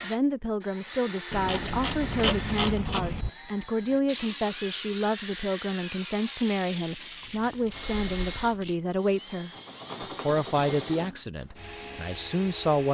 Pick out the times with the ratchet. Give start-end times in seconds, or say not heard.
1.3-3.3, 7.2-8.8.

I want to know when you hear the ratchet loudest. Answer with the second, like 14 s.
2 s.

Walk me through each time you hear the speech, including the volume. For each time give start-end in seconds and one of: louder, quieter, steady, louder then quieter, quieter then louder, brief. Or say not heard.
0.0-9.5 steady
10.2-12.8 brief.